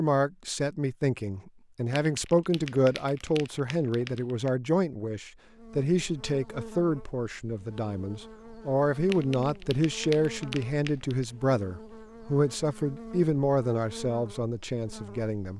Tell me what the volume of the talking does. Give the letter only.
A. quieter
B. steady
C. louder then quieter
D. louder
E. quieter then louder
B.